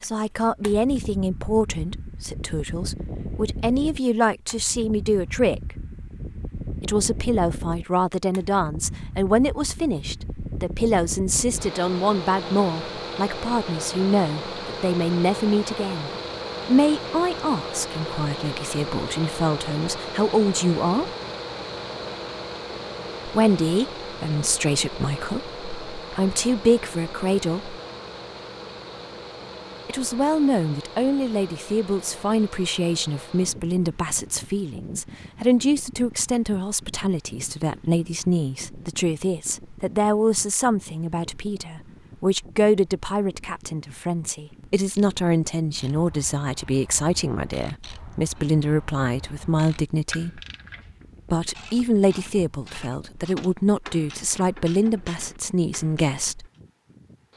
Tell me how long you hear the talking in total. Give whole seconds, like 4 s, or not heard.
50 s.